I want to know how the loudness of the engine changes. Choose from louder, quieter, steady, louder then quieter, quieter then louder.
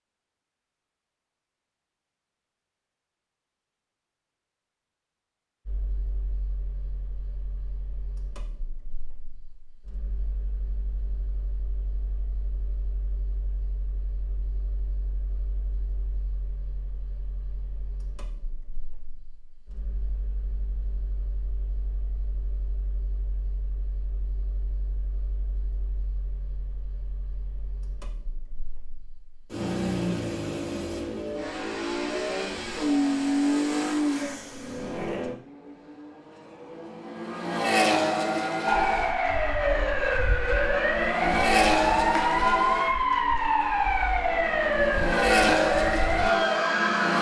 louder.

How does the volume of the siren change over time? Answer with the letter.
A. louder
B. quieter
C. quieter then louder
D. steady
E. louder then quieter
D.